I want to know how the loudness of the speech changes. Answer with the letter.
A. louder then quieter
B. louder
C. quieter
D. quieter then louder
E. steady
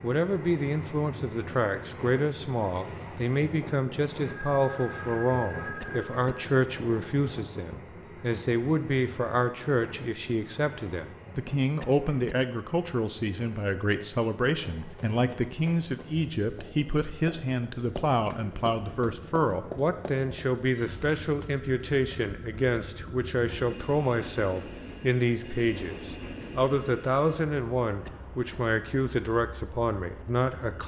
E.